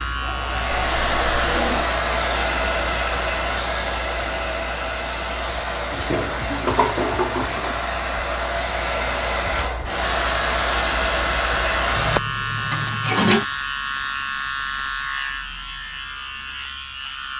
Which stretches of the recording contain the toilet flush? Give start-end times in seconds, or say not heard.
0.7-1.9, 5.9-7.8, 11.9-13.4.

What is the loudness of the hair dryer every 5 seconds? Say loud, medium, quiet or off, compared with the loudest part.
loud, loud, loud, off.